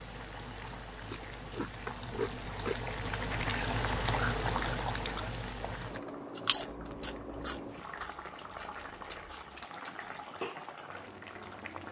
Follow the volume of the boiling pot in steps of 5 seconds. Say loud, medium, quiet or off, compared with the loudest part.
loud, medium, medium.